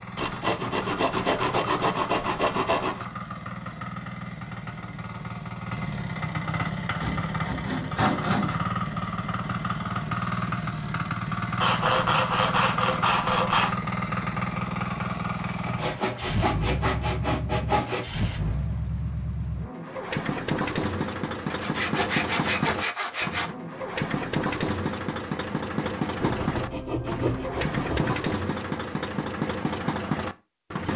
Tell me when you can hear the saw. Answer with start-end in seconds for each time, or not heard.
0.1-3.0, 7.0-8.6, 11.6-13.8, 15.7-18.1, 21.5-23.5, 26.2-28.1.